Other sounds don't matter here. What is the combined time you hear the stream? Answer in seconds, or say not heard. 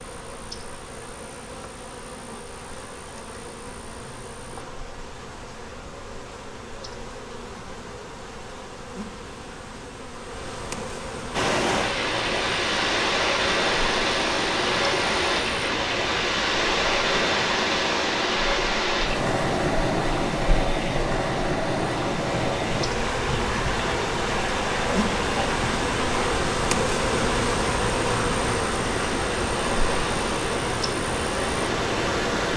21 s.